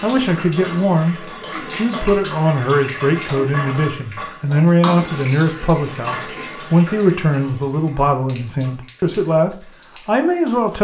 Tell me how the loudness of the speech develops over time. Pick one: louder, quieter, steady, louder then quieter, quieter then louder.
steady.